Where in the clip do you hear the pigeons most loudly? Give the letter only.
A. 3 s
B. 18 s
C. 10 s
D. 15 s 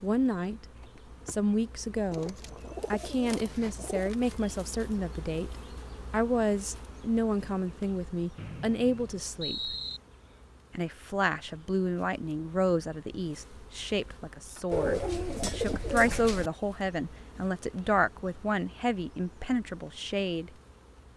D.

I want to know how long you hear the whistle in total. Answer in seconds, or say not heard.
2 s.